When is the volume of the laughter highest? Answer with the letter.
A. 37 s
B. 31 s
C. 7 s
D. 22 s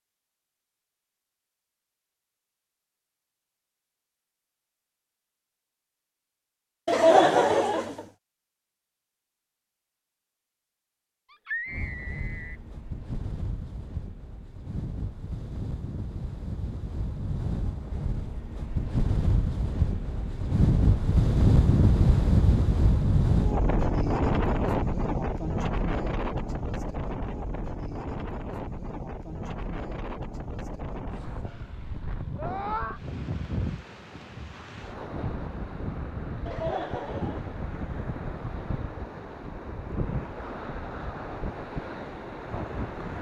C.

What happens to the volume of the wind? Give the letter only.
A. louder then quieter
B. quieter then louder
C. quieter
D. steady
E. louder
A.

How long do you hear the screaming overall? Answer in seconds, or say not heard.
2 s.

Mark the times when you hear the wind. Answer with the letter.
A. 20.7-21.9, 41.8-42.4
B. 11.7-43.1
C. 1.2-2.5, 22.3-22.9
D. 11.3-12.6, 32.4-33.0
B.